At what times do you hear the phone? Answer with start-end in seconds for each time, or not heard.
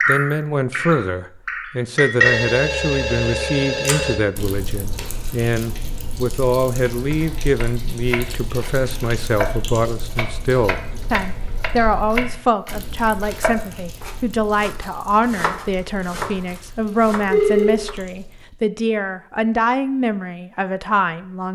2.2-4.2, 16.9-17.8.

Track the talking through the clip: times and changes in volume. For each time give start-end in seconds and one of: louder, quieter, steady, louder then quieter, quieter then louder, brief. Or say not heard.
0.1-21.5 steady.